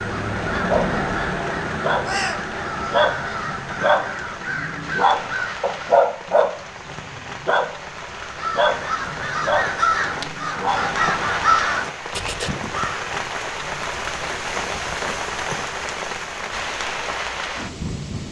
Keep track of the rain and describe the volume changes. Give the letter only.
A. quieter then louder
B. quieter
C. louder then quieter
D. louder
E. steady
D.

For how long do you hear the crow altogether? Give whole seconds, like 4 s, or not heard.
11 s.